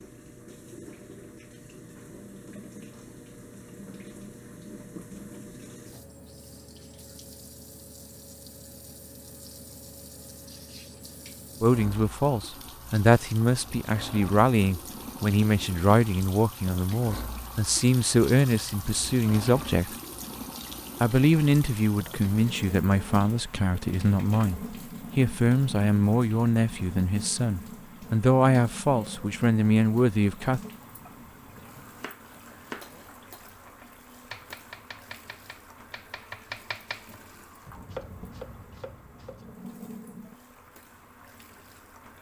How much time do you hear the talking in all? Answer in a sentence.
The talking can be heard for 18 seconds in total.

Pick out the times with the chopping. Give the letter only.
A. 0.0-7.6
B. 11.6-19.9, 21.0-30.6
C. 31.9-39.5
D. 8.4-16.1
C.